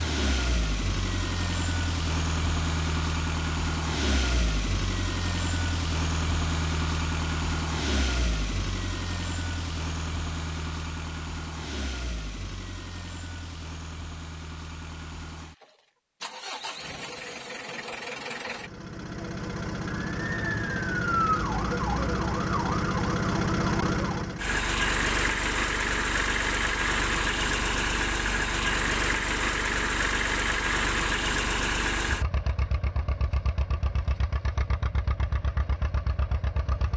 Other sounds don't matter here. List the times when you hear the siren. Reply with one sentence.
The siren can be heard from 19.9 to 24.2 s.